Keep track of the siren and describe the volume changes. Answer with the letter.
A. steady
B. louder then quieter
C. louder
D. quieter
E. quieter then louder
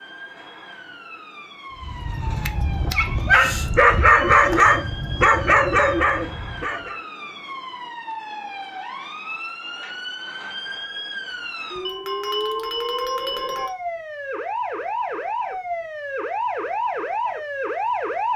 C.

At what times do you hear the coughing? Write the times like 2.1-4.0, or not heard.
not heard.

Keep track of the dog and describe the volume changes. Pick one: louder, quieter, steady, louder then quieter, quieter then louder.
louder then quieter.